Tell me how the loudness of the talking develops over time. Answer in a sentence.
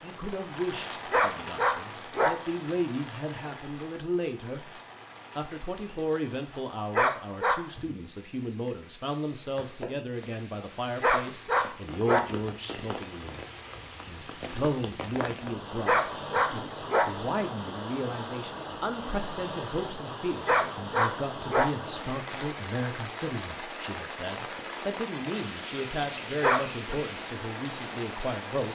The loudness of the talking stays about the same.